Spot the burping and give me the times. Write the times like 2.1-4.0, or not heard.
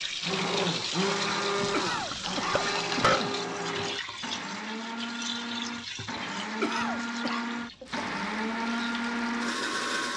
1.6-3.2.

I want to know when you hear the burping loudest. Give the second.
3 s.